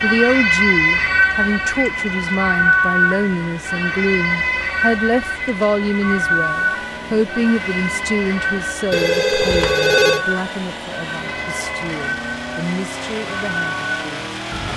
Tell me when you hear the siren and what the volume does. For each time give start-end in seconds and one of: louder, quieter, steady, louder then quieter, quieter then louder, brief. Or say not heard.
0.0-14.7 quieter.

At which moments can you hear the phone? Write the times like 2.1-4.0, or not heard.
8.9-10.2.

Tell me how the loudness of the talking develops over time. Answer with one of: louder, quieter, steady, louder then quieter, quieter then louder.
quieter.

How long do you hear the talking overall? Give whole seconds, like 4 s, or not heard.
15 s.